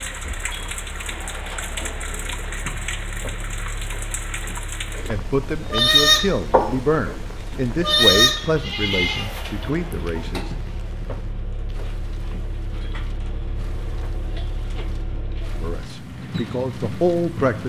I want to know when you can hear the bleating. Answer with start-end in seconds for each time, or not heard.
5.7-7.2, 7.8-10.4.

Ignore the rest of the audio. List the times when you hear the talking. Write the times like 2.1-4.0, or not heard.
5.0-10.5, 15.6-17.6.